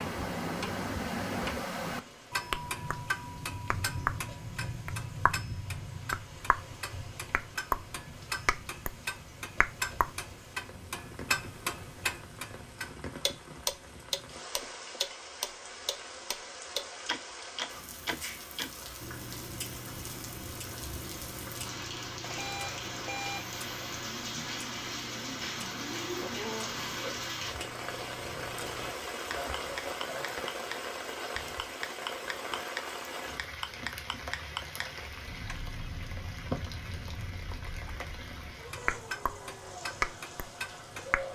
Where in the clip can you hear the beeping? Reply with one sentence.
The beeping can be heard from 22.2 to 23.6 s.